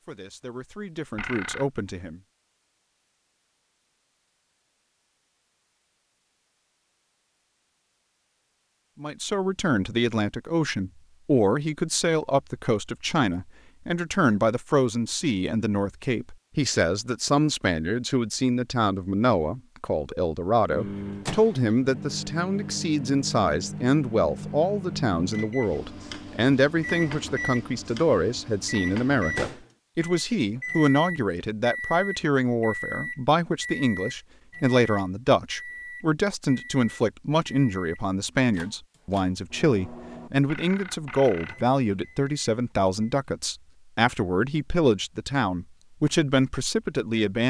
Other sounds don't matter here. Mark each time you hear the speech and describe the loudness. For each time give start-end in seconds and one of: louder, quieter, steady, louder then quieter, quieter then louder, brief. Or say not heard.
0.0-2.2 brief
9.0-47.4 steady.